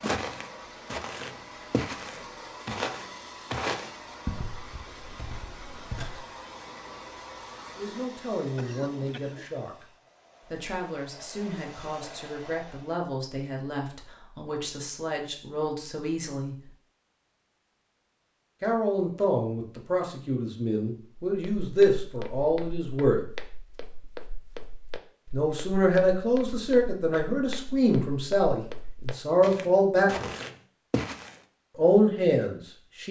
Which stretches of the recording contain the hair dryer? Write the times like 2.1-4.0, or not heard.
0.0-13.1.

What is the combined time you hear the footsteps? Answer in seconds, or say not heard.
16 s.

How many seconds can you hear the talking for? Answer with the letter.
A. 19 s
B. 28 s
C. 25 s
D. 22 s
A.